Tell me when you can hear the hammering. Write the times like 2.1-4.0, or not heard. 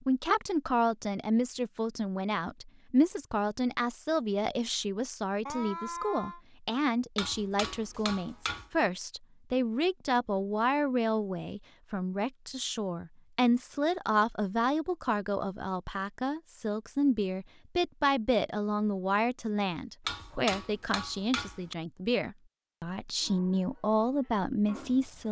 7.2-8.7, 20.1-21.8.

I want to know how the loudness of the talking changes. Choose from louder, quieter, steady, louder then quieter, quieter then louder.
steady.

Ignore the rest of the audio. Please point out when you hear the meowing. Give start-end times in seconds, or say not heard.
5.5-6.4.